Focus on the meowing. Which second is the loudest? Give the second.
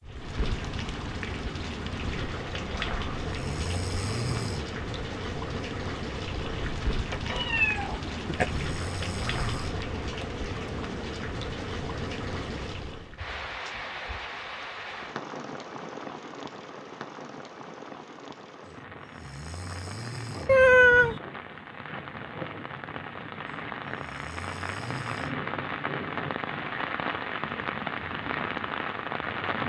21 s.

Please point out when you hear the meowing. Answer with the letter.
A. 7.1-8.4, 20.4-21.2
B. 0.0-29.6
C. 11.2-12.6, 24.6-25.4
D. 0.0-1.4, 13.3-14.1
A.